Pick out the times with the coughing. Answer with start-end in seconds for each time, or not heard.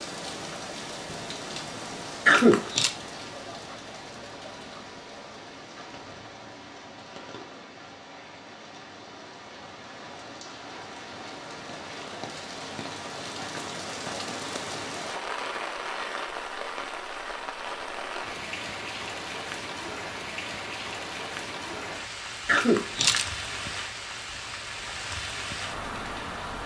2.2-2.9, 22.4-23.2.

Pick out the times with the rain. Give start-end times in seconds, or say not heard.
0.0-26.6.